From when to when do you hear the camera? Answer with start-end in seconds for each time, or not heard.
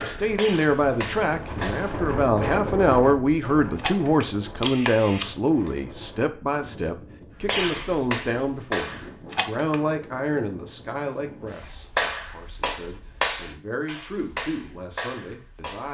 3.8-5.7, 9.3-9.8.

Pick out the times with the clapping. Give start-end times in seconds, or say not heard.
0.0-1.9, 7.5-9.1, 11.6-15.8.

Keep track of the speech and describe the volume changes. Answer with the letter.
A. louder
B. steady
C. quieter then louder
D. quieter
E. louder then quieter
D.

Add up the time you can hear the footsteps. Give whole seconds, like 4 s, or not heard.
not heard.